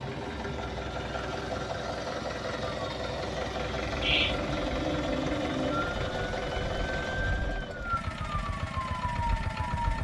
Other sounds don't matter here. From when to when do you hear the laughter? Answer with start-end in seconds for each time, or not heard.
4.0-4.4.